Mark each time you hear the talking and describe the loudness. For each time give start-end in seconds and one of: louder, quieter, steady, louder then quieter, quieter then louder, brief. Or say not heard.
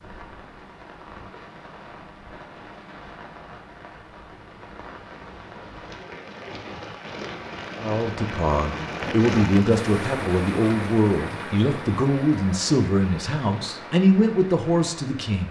7.8-15.4 steady.